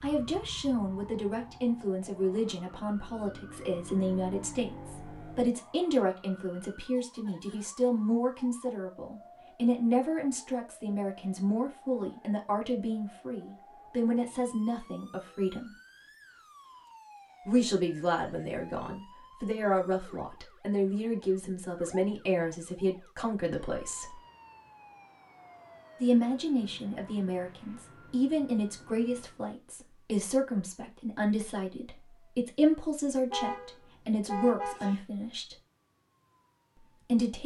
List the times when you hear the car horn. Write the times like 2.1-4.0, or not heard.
33.3-35.0.